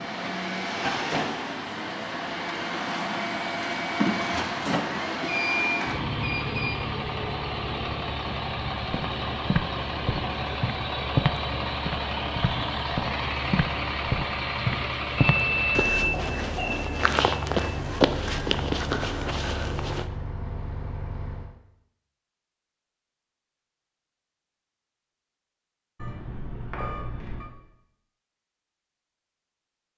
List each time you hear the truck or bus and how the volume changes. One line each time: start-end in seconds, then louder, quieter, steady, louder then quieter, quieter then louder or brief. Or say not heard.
0.0-21.6 quieter.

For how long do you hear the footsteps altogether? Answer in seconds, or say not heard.
11 s.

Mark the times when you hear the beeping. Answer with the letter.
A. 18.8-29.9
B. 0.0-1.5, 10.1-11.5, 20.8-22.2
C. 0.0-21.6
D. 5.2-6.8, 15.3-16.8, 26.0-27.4
D.